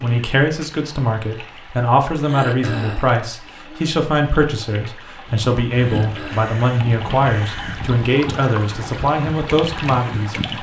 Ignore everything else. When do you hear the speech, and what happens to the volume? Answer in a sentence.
The speech can be heard from 0.0 to 10.3 s, at a steady volume.